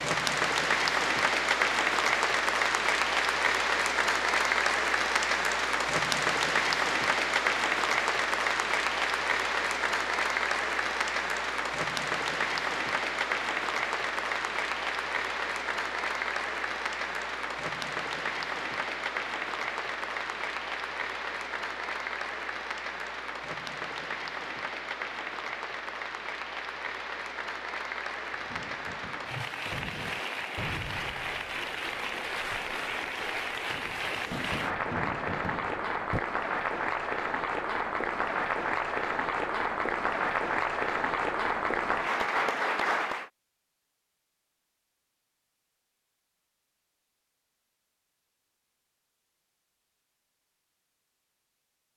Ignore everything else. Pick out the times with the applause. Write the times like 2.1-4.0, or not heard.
0.0-43.3.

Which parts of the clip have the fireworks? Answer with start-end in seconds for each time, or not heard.
28.3-36.2.